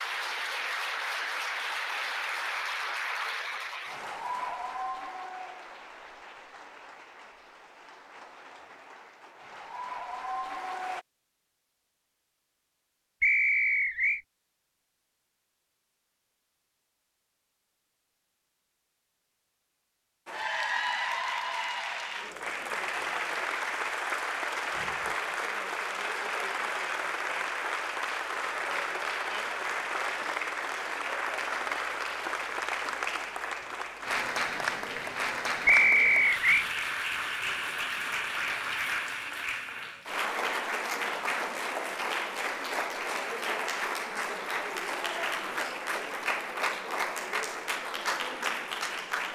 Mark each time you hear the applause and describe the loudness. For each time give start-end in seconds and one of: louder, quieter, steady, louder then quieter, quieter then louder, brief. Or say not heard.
0.0-11.1 quieter then louder
20.2-49.2 steady.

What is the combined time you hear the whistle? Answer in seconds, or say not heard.
2 s.